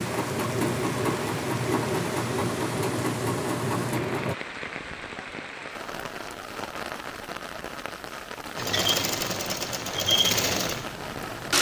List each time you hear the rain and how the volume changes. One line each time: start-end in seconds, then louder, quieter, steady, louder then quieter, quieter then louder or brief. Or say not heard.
0.0-11.5 steady.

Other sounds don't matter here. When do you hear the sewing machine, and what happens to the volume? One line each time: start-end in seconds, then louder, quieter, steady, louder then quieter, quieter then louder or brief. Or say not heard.
0.0-4.3 steady
8.6-11.5 brief.